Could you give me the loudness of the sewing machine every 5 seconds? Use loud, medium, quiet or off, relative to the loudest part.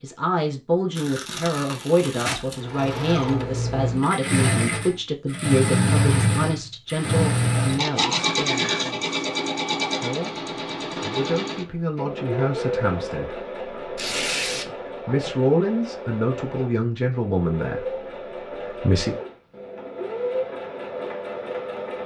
loud, loud, medium, medium, medium.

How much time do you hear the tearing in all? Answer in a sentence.
You can hear the tearing for 2 seconds altogether.